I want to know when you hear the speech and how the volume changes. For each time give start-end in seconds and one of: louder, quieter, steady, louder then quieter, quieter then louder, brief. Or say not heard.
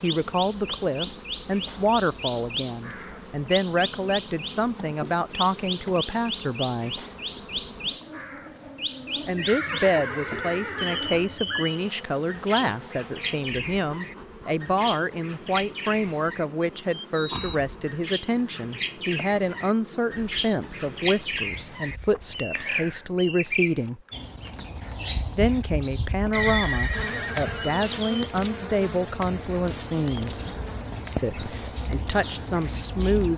0.0-7.0 steady
9.2-24.0 steady
25.4-30.5 steady
31.1-33.3 brief.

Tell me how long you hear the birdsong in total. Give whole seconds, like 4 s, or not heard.
33 s.